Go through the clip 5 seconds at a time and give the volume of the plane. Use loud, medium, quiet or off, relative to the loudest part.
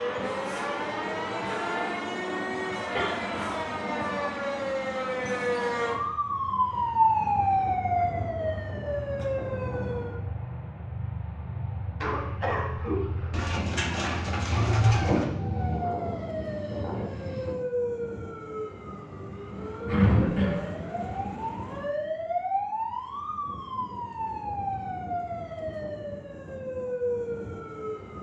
loud, medium, medium, loud, off, off.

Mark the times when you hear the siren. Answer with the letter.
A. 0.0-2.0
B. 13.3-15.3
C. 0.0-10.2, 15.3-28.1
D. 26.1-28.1
C.